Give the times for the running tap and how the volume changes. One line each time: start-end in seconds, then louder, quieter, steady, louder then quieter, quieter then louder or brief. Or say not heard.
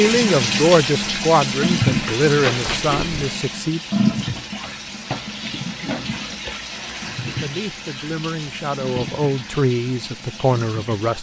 0.0-11.1 quieter.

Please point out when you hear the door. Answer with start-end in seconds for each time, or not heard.
2.4-3.4.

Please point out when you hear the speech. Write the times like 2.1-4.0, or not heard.
0.0-3.8, 7.3-11.1.